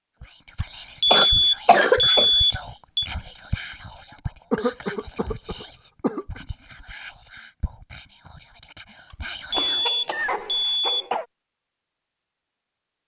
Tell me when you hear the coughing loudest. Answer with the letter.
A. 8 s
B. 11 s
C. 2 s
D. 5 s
C.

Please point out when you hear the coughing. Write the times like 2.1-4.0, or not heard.
1.1-2.3, 4.5-6.4, 9.5-11.2.